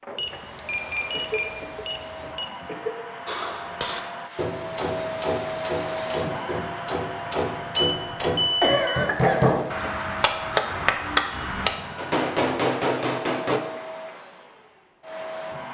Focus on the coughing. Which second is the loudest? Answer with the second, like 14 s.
9 s.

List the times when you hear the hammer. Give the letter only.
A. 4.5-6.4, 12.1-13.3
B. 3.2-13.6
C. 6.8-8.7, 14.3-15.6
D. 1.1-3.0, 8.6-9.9
B.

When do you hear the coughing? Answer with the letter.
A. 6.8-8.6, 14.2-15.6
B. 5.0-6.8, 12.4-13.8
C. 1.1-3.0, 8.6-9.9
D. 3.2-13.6
C.